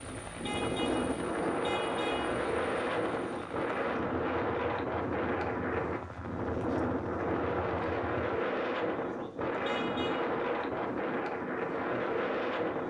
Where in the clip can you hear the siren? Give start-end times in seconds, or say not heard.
not heard.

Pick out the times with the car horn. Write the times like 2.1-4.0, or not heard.
0.4-2.4, 9.6-10.2.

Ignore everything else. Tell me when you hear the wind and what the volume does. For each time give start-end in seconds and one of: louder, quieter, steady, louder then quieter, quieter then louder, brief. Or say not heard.
0.0-12.8 steady.